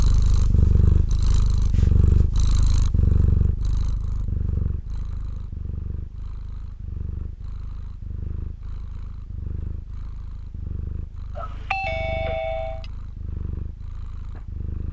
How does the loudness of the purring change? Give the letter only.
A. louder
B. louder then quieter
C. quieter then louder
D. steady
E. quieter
E.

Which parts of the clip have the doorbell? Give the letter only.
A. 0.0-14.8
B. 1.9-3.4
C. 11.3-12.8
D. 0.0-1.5
C.